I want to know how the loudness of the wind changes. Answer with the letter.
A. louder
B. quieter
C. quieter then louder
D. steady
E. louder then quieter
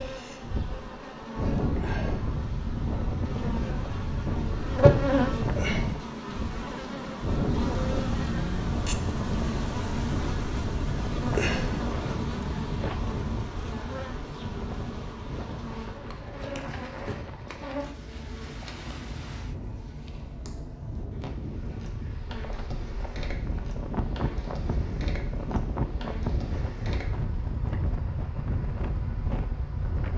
C.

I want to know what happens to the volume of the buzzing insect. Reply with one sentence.
The loudness of the buzzing insect goes down.